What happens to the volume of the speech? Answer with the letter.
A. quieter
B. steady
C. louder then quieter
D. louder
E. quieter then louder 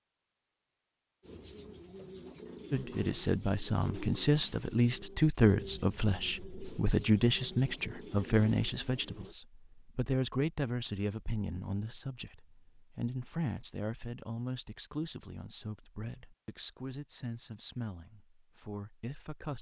A.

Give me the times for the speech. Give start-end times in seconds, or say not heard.
2.7-19.5.